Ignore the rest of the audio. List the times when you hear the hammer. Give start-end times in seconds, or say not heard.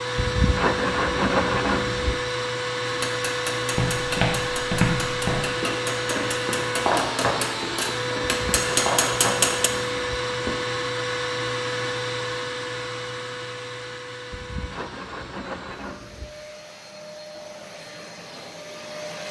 2.9-9.7.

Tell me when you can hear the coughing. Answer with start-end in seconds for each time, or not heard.
not heard.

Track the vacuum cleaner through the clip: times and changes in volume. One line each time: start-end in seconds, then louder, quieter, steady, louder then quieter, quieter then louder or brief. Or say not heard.
0.0-19.2 quieter.